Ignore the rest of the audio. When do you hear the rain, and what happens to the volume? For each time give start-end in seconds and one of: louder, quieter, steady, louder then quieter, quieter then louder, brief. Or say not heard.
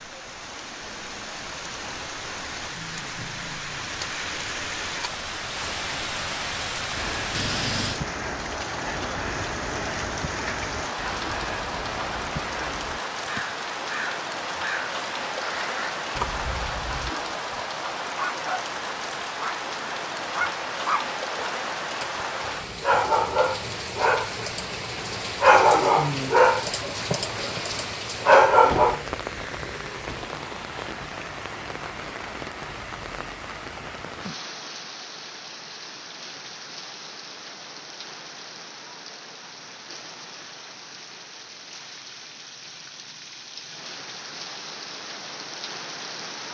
0.0-46.4 quieter.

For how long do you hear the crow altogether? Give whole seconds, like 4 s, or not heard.
9 s.